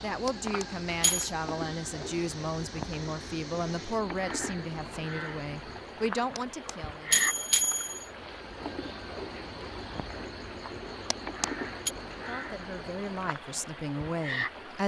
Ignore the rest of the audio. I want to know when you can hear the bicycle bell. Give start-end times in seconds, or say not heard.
0.2-1.3, 6.3-8.1, 11.1-11.9.